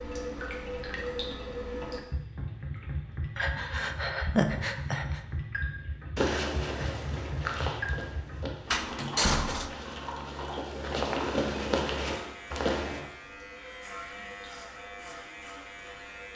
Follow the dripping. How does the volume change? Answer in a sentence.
The volume of the dripping goes down.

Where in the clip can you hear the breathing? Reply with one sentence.
You can hear the breathing from 3.4 to 5.2 s.